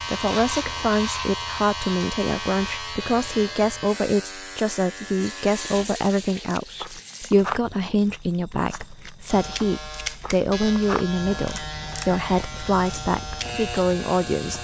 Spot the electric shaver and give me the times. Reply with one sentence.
The electric shaver can be heard from 0.0 to 5.8 s and from 9.3 to 14.5 s.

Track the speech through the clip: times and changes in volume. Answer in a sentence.
The speech can be heard from 0.1 to 14.5 s, at a steady volume.